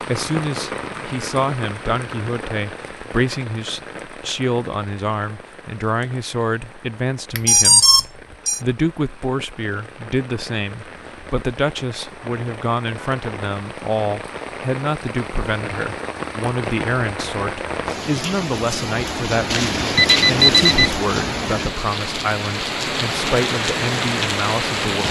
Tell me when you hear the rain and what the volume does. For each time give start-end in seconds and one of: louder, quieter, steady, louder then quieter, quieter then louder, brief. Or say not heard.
0.0-25.0 quieter then louder.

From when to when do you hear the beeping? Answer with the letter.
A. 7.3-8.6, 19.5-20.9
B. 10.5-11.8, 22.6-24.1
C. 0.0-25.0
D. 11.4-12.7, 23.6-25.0
A.